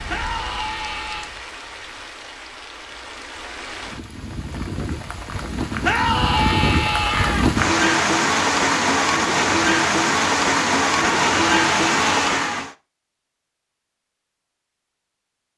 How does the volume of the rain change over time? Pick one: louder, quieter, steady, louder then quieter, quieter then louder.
louder.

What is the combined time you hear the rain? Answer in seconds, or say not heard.
13 s.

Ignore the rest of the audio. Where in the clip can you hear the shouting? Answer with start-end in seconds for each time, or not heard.
0.1-1.3, 5.8-7.5, 11.0-12.7.